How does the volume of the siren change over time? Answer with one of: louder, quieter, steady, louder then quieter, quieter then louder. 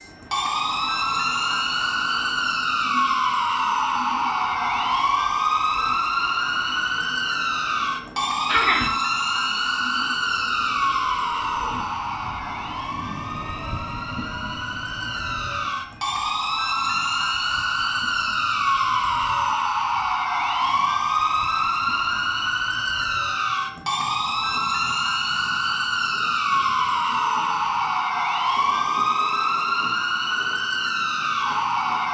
steady.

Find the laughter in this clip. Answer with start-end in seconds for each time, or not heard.
8.4-8.9.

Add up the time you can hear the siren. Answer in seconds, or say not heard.
32 s.